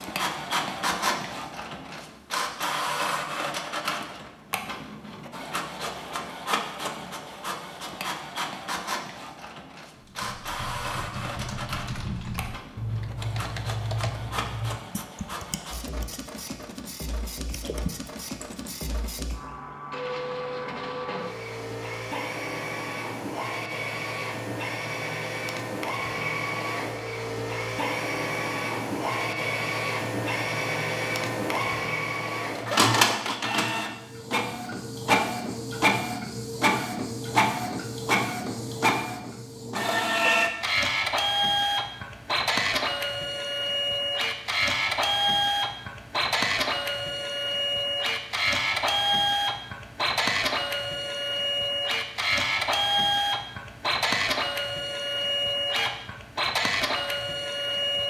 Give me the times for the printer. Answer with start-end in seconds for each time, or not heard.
0.0-58.0.